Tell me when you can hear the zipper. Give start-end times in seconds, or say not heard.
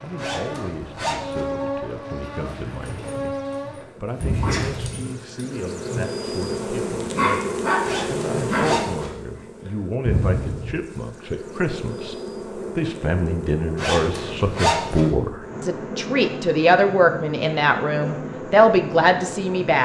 0.1-1.5, 7.8-9.2, 13.8-15.1.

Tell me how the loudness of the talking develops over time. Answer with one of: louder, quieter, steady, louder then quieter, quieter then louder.
louder.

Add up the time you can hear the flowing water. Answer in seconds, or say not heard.
not heard.